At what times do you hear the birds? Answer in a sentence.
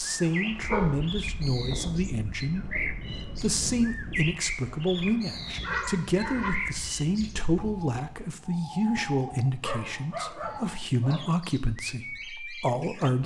The birds can be heard from 0.1 to 13.2 s.